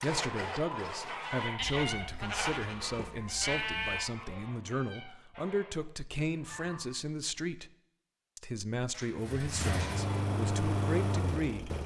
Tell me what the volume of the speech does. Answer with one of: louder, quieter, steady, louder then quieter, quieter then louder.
steady.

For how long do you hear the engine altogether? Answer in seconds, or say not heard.
6 s.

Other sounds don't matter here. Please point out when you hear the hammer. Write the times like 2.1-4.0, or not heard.
not heard.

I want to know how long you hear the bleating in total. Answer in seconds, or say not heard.
4 s.